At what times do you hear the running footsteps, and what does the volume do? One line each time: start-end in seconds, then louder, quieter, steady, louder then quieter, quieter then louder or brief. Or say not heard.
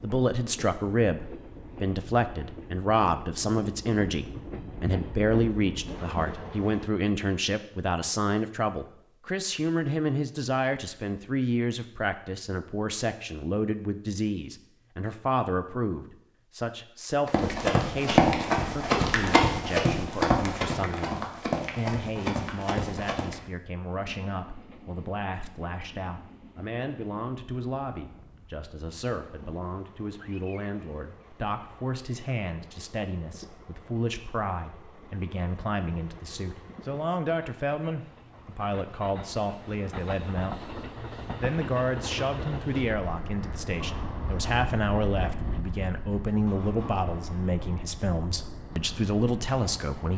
17.2-23.4 quieter.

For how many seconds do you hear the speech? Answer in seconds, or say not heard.
50 s.